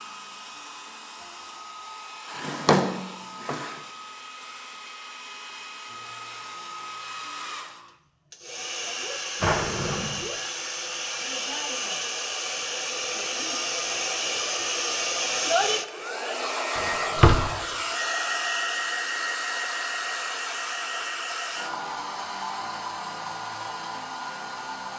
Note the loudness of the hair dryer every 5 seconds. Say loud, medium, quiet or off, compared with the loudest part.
quiet, medium, loud, loud, medium.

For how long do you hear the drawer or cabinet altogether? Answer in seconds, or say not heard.
3 s.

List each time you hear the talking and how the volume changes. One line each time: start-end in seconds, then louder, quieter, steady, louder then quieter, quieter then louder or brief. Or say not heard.
not heard.